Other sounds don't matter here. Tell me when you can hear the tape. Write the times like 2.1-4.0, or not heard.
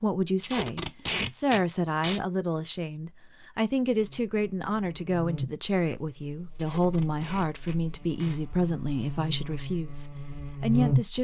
0.4-2.2, 6.5-8.4.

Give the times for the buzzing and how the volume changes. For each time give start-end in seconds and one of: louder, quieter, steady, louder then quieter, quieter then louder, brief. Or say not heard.
3.8-11.1 quieter then louder.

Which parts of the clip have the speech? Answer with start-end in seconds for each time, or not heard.
0.0-11.1.